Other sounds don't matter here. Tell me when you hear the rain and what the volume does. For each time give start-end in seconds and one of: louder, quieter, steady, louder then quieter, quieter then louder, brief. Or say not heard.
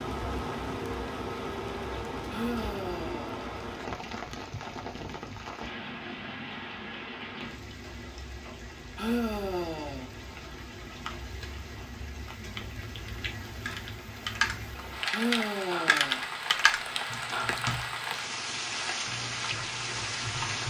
0.0-20.6 quieter then louder.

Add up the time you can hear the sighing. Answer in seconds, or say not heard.
3 s.